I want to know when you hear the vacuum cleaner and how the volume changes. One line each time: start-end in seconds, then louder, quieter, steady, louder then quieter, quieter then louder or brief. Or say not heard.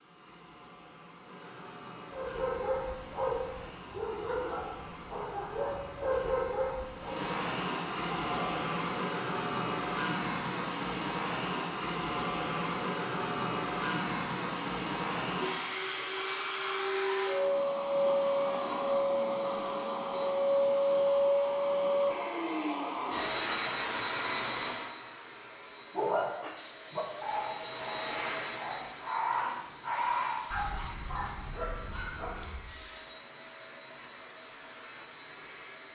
0.0-35.9 louder then quieter.